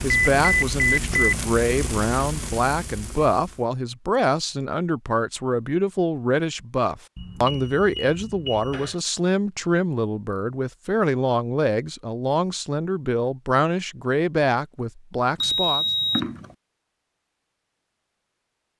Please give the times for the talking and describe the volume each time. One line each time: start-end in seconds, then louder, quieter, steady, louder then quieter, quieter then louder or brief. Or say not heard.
0.0-15.8 steady.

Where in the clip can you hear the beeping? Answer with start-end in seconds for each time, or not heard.
0.1-1.4, 7.2-8.9, 15.4-16.4.